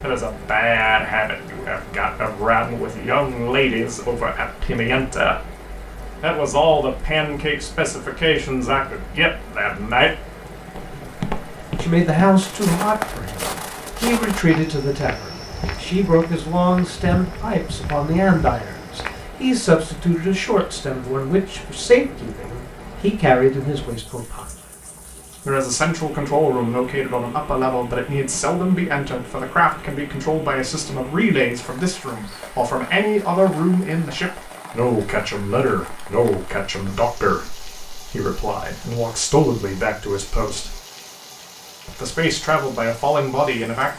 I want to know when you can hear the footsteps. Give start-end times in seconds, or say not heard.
10.8-19.2.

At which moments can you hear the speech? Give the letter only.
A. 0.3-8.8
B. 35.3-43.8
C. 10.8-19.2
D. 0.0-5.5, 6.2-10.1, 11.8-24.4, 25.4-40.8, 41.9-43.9
D.